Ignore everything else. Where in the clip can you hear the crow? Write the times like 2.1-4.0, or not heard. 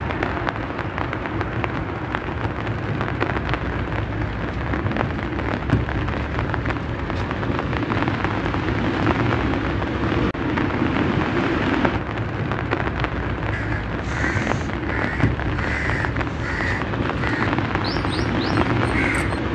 13.5-19.4.